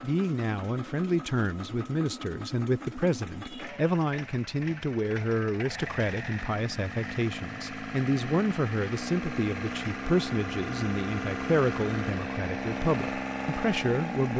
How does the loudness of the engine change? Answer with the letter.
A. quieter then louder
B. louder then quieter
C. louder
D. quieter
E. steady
C.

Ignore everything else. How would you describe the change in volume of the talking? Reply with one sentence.
The volume of the talking stays about the same.